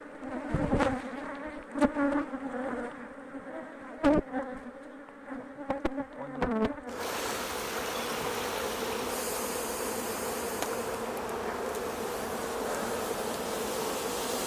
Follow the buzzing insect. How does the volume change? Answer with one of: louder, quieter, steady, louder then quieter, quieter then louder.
steady.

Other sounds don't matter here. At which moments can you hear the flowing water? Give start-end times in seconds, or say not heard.
7.0-14.4.